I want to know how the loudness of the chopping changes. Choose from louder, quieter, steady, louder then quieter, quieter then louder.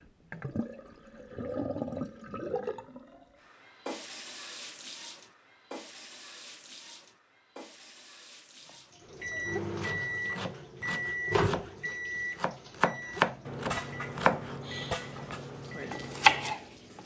louder then quieter.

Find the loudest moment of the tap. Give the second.
2 s.